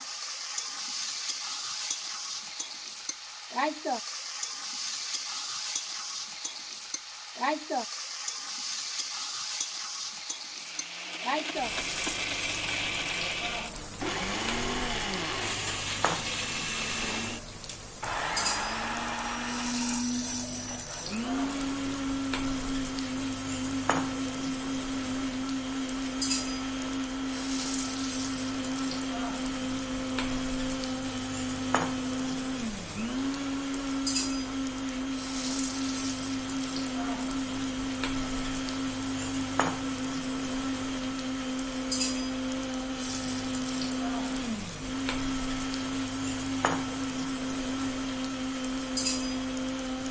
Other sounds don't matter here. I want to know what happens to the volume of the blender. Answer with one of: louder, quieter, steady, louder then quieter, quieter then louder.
steady.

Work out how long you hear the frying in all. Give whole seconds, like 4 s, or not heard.
50 s.